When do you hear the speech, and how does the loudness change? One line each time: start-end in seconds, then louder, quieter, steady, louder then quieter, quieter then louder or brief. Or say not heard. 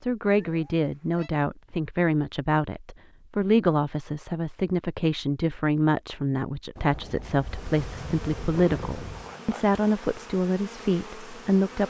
0.0-11.8 steady.